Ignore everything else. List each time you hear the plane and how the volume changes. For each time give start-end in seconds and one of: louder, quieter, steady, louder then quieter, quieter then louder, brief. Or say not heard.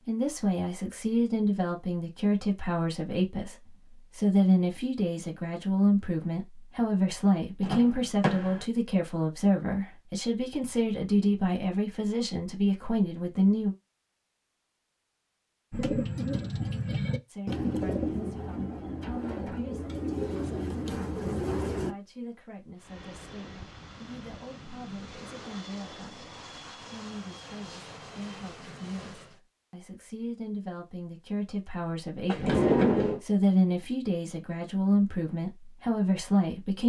22.8-29.4 steady.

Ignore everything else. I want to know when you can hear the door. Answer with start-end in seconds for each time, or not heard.
7.6-8.7, 32.2-33.2.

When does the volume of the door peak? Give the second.
33 s.